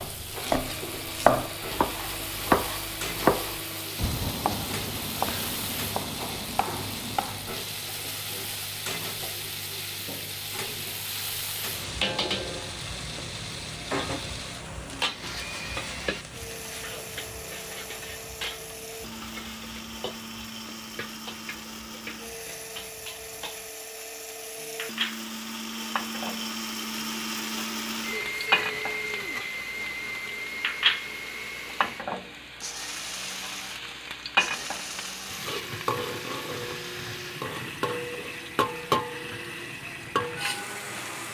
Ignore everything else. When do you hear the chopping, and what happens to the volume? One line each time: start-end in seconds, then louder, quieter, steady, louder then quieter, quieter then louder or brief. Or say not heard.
0.0-7.7 quieter.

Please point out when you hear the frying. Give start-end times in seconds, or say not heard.
0.0-41.2.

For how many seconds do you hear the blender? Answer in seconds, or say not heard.
41 s.